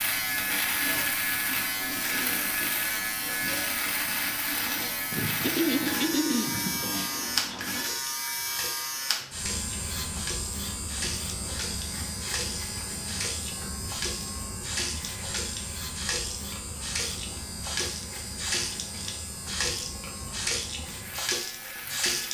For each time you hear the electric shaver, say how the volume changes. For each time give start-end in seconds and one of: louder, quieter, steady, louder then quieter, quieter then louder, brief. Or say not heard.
0.0-22.3 quieter.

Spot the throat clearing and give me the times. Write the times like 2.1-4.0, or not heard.
5.4-6.8.